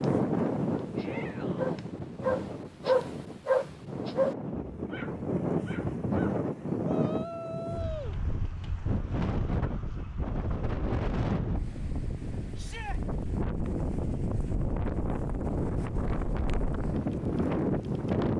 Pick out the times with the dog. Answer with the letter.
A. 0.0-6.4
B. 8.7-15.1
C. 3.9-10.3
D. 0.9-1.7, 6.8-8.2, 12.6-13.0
A.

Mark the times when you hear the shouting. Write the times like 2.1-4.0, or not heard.
0.9-1.7, 6.8-8.2, 12.6-13.0.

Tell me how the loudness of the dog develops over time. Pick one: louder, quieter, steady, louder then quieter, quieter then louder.
louder then quieter.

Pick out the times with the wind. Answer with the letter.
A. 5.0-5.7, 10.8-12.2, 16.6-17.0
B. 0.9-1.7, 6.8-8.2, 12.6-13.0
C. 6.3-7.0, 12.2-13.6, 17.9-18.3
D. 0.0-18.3
D.